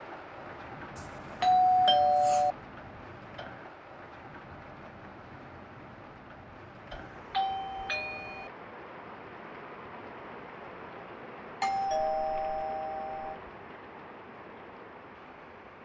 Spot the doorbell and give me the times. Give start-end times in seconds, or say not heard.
0.9-2.5, 6.9-8.5, 11.6-13.4.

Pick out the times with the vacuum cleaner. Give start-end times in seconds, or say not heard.
not heard.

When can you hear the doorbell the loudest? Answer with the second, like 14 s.
2 s.